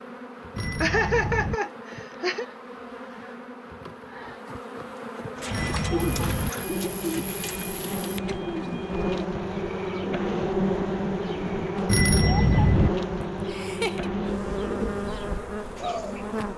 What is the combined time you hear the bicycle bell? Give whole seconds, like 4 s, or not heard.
3 s.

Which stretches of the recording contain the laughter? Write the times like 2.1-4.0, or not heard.
0.8-2.5, 6.0-8.2, 13.4-14.1.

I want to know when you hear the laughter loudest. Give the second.
1 s.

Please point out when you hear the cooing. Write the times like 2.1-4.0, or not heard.
5.3-16.2.